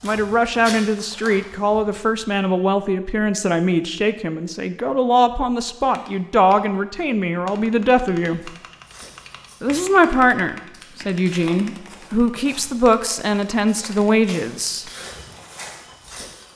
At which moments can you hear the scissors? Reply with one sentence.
The scissors can't be heard in this clip.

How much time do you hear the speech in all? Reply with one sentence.
The speech can be heard for 14 seconds in total.